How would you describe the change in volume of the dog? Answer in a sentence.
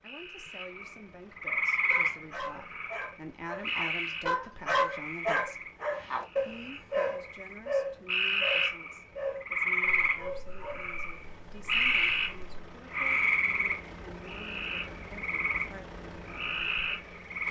The loudness of the dog goes up, then down.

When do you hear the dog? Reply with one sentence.
You can hear the dog from 1.9 to 12.7 s.